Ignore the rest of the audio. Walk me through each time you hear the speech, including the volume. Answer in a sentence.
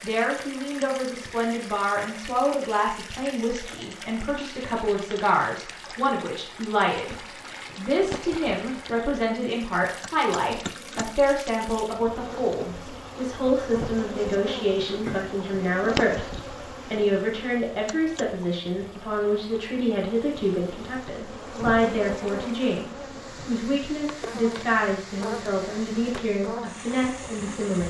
The speech can be heard from 0.0 to 27.8 s, at a steady volume.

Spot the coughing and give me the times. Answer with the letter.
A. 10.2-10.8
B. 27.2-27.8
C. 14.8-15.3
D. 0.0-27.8
C.